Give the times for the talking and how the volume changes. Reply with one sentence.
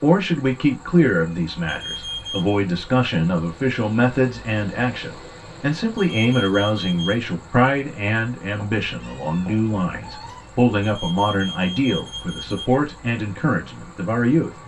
The talking can be heard from 0.0 to 14.5 s, at a steady volume.